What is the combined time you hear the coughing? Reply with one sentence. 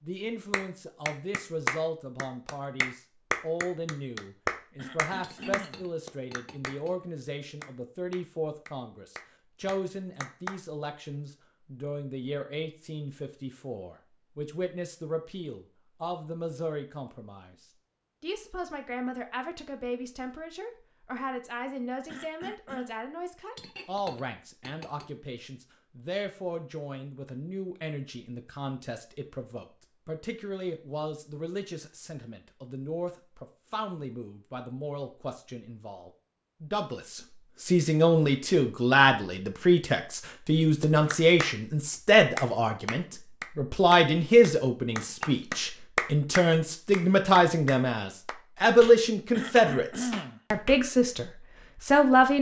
The coughing can be heard for 3 seconds in total.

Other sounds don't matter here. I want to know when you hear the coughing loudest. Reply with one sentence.
The volume of the coughing peaks at 50 seconds.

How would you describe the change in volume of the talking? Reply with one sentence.
The volume of the talking goes up.